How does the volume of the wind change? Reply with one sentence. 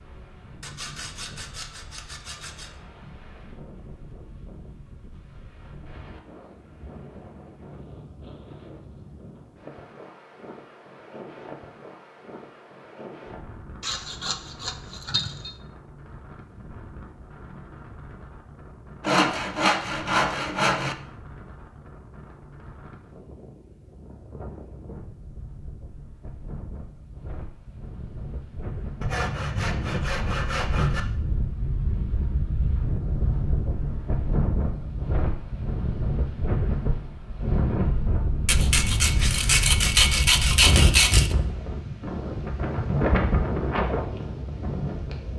The loudness of the wind goes up.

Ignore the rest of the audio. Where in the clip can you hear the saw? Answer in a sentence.
You can hear the saw from 0.6 to 2.7 s, from 13.8 to 15.5 s, from 19.0 to 20.9 s, from 29.0 to 31.0 s and from 38.5 to 41.4 s.